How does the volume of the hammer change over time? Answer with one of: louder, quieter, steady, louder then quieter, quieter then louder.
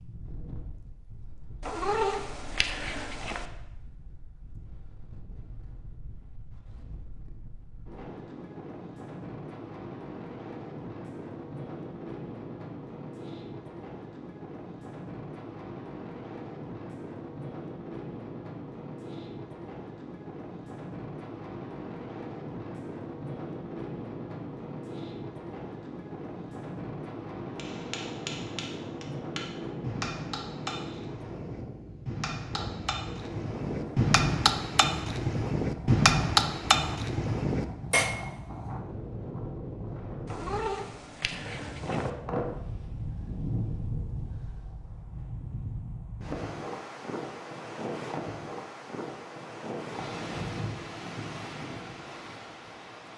louder.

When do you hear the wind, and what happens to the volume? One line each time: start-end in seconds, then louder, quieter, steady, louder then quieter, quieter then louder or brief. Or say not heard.
0.0-53.1 louder.